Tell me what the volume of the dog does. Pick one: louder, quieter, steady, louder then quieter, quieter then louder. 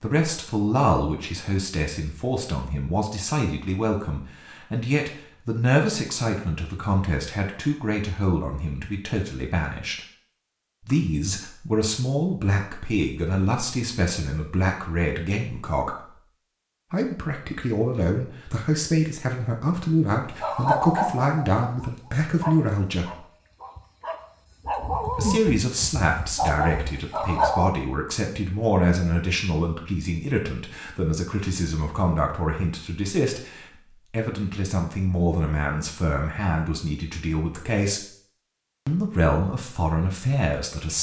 quieter then louder.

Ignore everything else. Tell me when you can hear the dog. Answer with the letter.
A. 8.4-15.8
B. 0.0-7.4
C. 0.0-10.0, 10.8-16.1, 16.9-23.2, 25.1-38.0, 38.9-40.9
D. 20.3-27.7
D.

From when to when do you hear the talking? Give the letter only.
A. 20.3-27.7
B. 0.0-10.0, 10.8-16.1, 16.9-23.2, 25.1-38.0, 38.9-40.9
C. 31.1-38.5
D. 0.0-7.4
B.